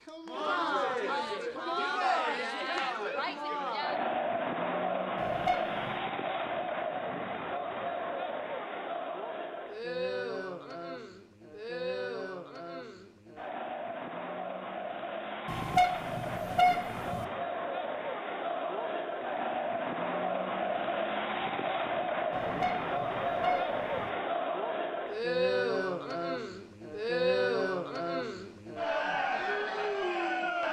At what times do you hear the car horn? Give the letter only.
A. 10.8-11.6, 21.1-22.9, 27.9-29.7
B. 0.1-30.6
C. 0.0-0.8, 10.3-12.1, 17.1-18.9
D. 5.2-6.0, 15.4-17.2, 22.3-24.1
D.